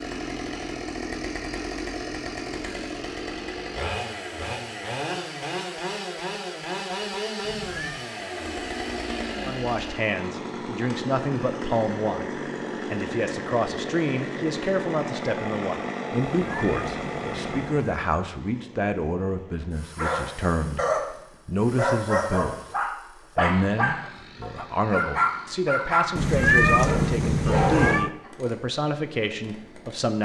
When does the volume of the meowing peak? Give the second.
27 s.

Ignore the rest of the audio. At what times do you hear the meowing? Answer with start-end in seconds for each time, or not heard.
7.4-8.1, 16.4-18.1, 26.1-28.1.